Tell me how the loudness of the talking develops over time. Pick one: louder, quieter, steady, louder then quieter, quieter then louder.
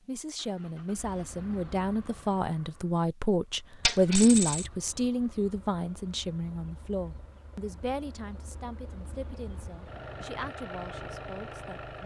louder then quieter.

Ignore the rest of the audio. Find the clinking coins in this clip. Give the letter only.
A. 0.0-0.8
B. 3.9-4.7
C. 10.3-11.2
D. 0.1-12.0
B.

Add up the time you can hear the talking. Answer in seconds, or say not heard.
12 s.